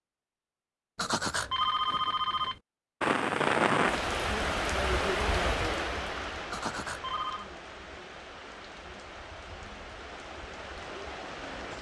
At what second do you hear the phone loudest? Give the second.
2 s.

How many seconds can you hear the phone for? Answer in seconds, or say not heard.
3 s.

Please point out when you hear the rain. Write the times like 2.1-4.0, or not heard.
3.0-11.7.